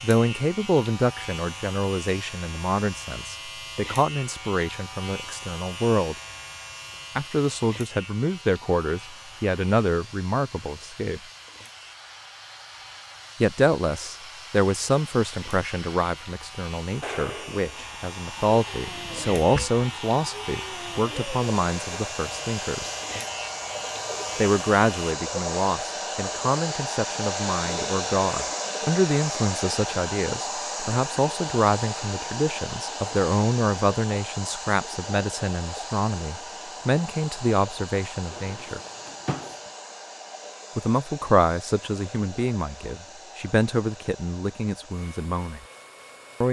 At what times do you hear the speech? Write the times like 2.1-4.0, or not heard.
0.0-6.2, 7.2-11.2, 13.4-22.9, 24.4-38.8, 40.8-45.6.